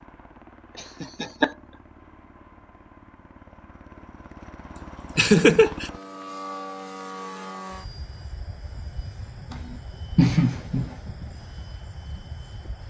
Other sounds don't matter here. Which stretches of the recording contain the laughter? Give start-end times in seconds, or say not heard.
0.8-1.5, 5.2-5.9, 9.5-10.9.